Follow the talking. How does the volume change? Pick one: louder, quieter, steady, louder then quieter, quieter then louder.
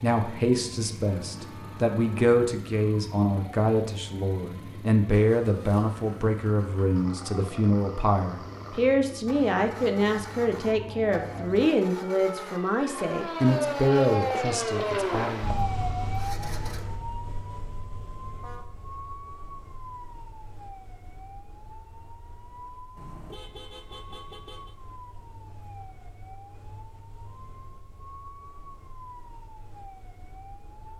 steady.